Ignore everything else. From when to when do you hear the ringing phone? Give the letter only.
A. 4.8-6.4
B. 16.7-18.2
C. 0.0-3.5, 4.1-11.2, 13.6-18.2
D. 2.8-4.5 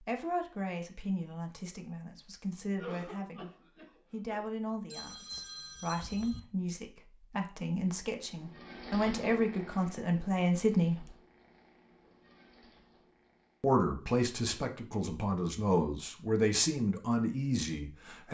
A.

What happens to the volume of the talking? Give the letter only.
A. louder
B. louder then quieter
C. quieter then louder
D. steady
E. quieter
A.